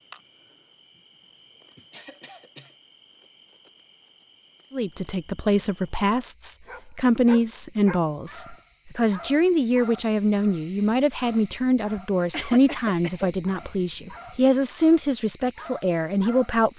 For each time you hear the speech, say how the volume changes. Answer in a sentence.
You can hear the speech from 4.7 to 16.7 s, at a steady volume.